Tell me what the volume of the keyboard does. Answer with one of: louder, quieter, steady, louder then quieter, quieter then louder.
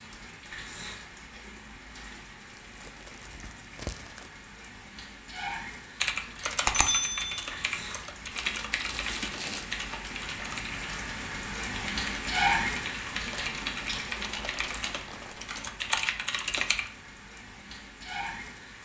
quieter then louder.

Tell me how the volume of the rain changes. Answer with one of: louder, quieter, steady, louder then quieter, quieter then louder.
louder then quieter.